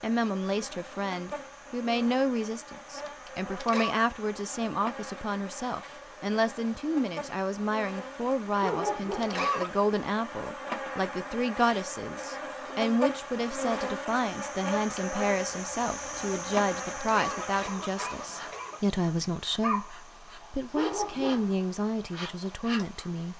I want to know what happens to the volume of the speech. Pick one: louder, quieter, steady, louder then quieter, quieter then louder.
steady.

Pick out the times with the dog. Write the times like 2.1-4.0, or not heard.
8.6-9.4, 20.8-21.6.